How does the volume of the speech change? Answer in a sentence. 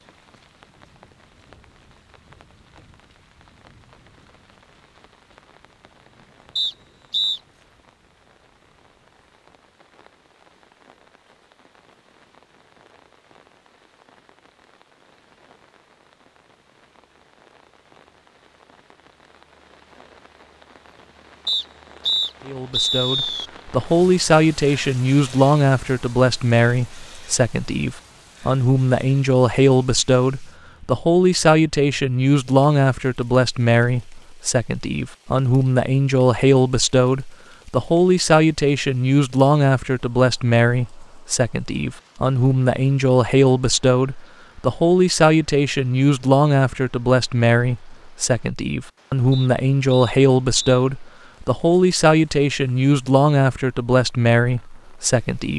The loudness of the speech stays about the same.